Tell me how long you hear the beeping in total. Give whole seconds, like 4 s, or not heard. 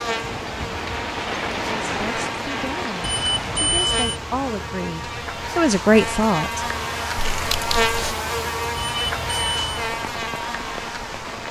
2 s.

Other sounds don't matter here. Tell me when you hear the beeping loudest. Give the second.
4 s.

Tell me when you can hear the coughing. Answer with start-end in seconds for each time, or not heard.
7.2-8.2.